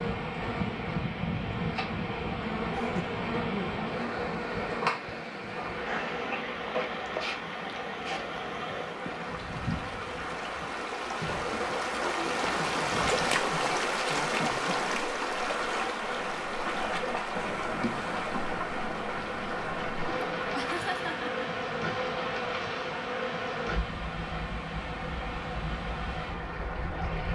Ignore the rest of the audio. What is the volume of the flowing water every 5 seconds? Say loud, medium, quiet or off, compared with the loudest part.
medium, medium, loud, loud, medium, medium.